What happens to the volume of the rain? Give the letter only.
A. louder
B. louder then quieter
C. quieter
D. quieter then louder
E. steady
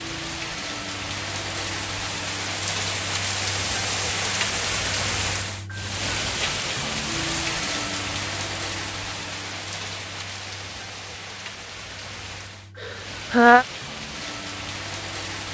C.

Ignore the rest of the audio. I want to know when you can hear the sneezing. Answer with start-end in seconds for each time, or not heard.
12.8-13.7.